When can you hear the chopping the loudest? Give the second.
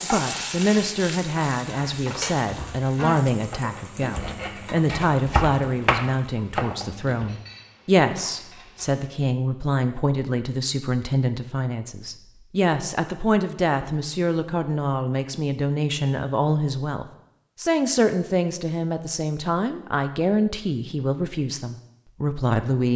6 s.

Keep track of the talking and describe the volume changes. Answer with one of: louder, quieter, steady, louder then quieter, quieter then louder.
steady.